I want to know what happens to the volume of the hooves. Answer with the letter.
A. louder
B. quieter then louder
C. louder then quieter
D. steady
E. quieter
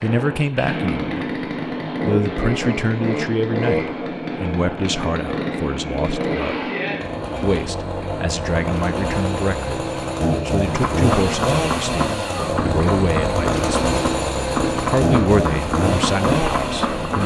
B.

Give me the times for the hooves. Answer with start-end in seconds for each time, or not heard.
10.7-17.2.